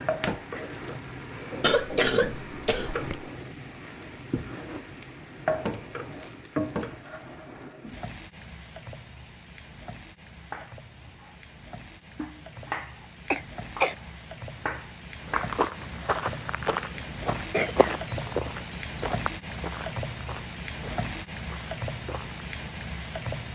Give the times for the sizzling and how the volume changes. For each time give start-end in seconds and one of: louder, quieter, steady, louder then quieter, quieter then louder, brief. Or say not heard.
0.0-23.4 quieter then louder.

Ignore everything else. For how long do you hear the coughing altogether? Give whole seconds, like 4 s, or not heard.
3 s.